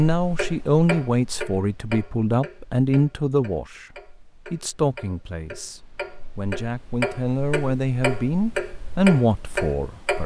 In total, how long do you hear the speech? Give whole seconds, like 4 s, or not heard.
10 s.